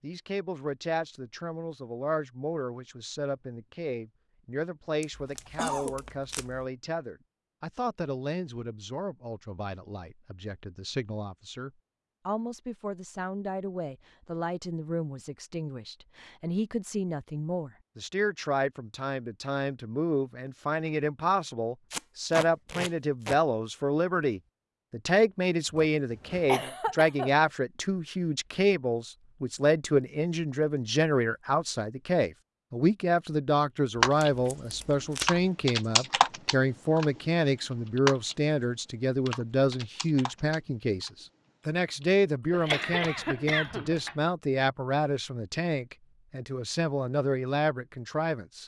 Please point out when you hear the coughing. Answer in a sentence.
You can hear the coughing from 5.0 to 6.0 s, from 25.8 to 27.3 s and from 42.5 to 44.1 s.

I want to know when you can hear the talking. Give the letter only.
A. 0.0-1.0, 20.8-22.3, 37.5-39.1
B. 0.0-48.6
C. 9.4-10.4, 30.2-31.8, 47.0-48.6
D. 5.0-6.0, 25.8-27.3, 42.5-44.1
B.